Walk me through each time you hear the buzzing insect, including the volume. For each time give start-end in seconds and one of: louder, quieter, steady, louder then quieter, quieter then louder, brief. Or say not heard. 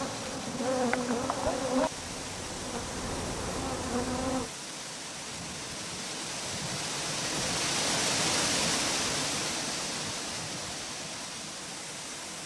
0.0-4.5 quieter then louder.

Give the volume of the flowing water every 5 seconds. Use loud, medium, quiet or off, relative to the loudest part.
medium, loud, medium.